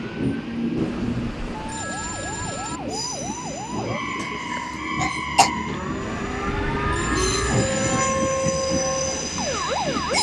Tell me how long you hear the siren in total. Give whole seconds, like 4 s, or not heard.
8 s.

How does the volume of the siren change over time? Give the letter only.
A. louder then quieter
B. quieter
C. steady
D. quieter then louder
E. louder
E.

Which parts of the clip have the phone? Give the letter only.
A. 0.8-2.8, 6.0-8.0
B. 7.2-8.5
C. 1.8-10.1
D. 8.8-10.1
A.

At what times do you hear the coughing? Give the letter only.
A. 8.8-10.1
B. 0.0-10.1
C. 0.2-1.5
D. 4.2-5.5
D.